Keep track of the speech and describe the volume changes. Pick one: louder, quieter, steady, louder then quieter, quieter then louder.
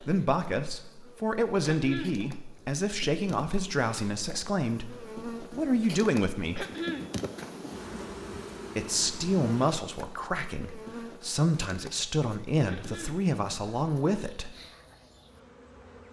steady.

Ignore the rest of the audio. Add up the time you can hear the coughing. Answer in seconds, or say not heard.
2 s.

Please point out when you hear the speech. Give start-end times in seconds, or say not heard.
0.0-6.7, 8.8-14.6.